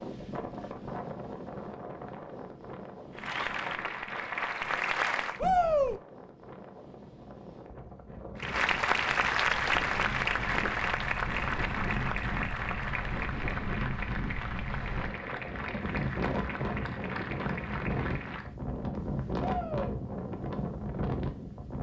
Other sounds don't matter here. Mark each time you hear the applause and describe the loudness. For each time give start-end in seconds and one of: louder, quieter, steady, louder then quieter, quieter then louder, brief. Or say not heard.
3.1-5.4 brief
8.3-18.6 quieter.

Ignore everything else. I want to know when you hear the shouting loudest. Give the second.
6 s.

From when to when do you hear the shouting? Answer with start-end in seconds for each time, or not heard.
5.4-6.0, 19.4-19.9.